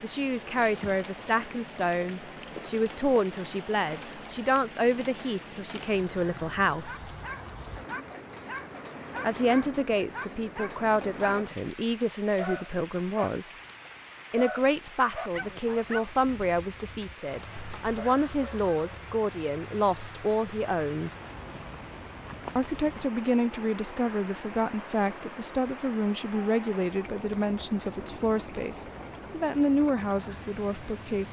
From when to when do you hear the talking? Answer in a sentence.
The talking can be heard from 0.0 to 7.1 s, from 9.2 to 13.5 s, from 14.3 to 21.1 s and from 22.6 to 31.2 s.